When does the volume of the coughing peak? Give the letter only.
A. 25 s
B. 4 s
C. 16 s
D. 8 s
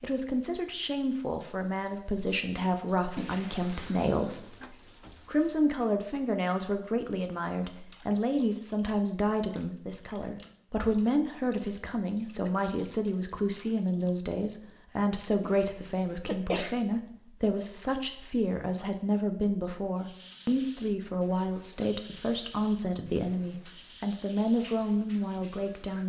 C.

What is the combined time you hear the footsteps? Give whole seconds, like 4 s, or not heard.
not heard.